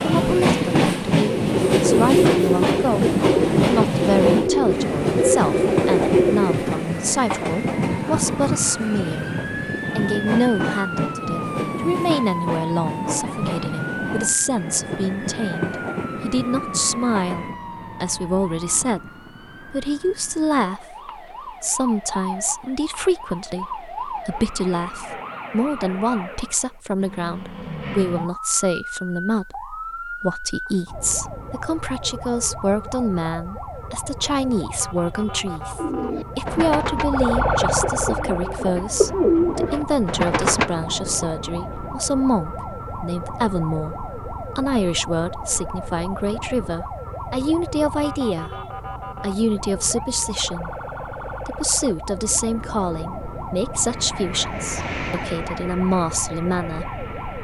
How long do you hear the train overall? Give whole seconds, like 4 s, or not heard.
21 s.